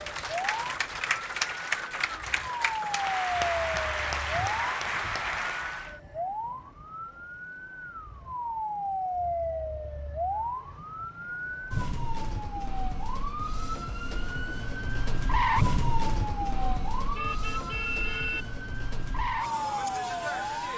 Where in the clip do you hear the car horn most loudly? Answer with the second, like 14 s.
18 s.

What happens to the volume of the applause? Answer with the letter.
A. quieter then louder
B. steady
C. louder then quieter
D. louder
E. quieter
B.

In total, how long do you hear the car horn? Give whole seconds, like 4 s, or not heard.
2 s.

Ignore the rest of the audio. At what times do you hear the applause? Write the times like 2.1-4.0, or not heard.
0.0-6.0.